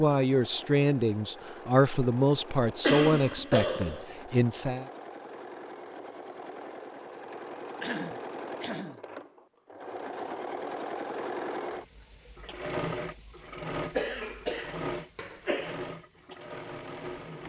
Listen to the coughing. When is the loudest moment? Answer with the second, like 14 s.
3 s.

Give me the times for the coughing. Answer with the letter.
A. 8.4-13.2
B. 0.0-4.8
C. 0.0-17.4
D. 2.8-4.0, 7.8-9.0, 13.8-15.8
D.